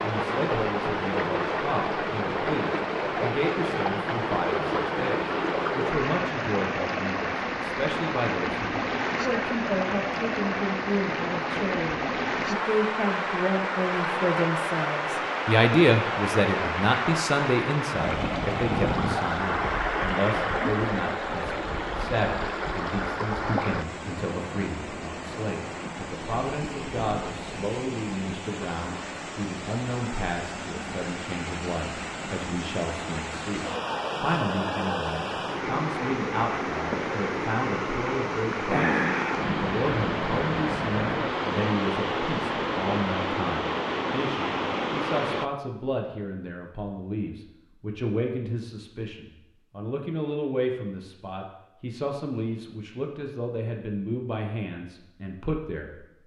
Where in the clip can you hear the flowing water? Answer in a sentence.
The flowing water can be heard from 0.0 to 45.5 s.